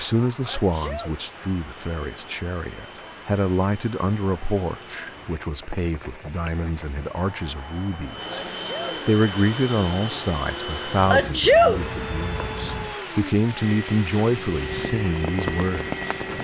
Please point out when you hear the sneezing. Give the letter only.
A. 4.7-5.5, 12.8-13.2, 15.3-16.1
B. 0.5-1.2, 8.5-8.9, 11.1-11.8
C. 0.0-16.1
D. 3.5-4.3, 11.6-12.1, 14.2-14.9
B.